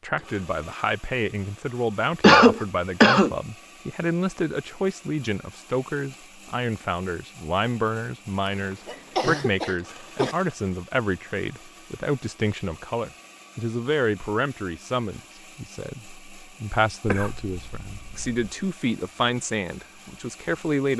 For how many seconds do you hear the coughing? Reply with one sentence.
You can hear the coughing for 4 seconds altogether.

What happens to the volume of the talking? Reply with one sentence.
The volume of the talking stays about the same.